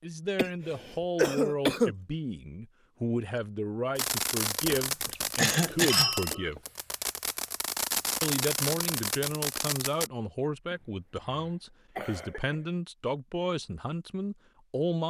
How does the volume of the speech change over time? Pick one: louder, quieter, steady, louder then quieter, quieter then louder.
steady.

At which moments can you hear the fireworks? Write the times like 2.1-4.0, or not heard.
4.0-10.1.